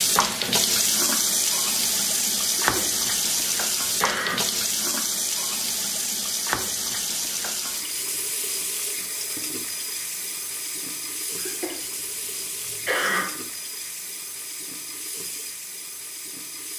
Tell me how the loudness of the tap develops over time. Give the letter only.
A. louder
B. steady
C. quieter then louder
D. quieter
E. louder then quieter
D.